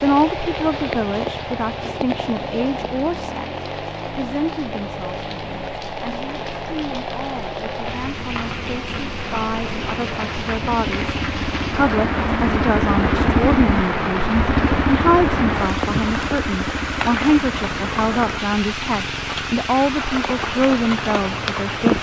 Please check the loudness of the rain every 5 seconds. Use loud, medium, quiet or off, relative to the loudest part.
medium, medium, loud, loud, loud.